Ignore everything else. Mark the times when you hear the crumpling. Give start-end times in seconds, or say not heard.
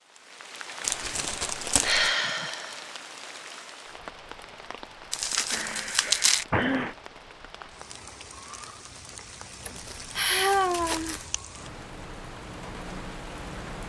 0.8-2.1, 5.1-6.5, 9.8-11.3.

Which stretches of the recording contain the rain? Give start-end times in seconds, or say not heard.
0.0-13.8.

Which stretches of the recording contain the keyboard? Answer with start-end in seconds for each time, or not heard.
not heard.